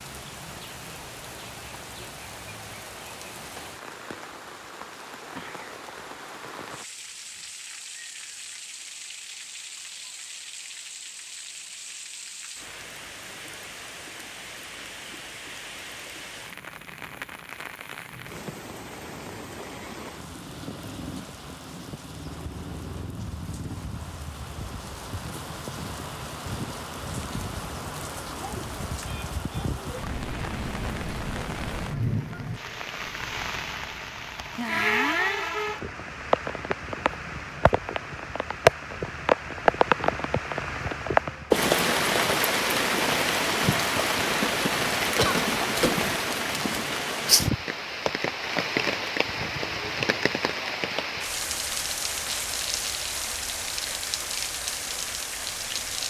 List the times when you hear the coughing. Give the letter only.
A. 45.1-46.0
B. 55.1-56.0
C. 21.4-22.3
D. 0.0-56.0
A.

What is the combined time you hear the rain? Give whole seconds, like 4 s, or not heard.
56 s.